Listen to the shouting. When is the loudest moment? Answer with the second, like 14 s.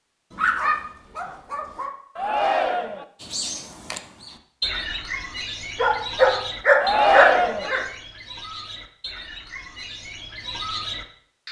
7 s.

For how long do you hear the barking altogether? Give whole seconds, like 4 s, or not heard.
4 s.